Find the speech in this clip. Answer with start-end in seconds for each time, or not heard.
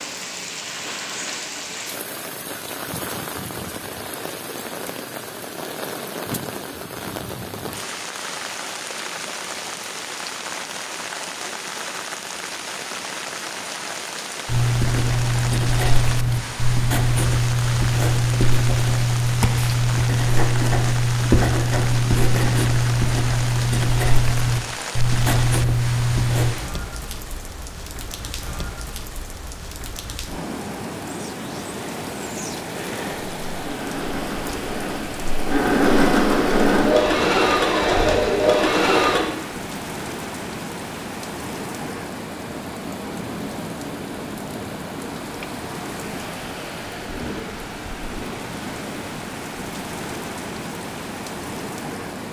not heard.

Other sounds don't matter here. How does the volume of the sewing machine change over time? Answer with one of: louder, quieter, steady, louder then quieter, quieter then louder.
louder.